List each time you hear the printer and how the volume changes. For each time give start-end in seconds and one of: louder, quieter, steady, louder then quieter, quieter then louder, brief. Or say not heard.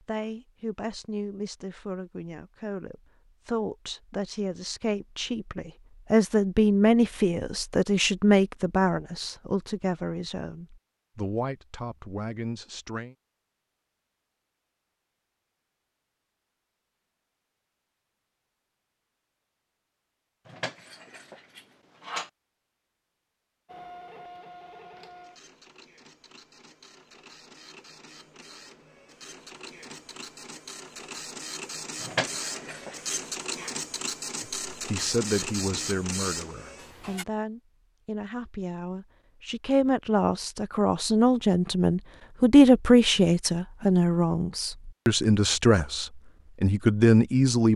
23.6-37.2 louder.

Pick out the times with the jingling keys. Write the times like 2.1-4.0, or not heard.
20.4-22.3, 32.0-33.7.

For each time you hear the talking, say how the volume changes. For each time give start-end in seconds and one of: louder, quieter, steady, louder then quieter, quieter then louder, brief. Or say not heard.
0.0-13.2 louder then quieter
34.9-47.7 louder.